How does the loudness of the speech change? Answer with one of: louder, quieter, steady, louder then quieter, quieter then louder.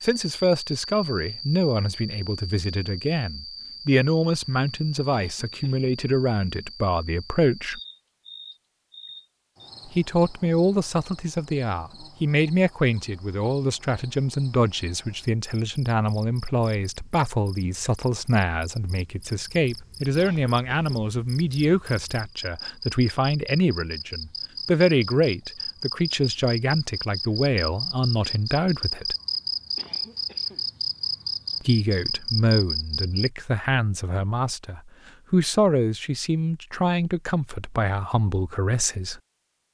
steady.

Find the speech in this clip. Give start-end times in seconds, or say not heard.
0.0-7.8, 9.8-29.1, 31.6-39.2.